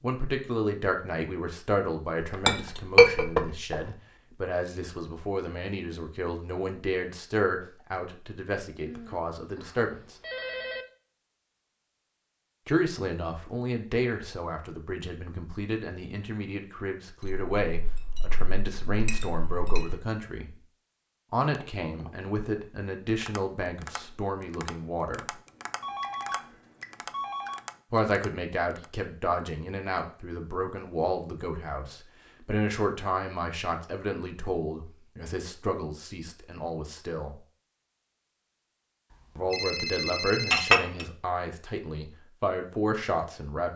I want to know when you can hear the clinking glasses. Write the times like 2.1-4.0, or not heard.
2.5-3.8, 17.2-20.0, 40.5-41.0.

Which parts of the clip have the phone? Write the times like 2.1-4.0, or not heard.
8.8-10.8, 25.8-27.6, 39.1-40.8.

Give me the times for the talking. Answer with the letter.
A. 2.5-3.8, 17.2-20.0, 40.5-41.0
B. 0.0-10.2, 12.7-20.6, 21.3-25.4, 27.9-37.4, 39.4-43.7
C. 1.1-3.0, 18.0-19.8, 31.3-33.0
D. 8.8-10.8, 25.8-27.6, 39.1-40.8
B.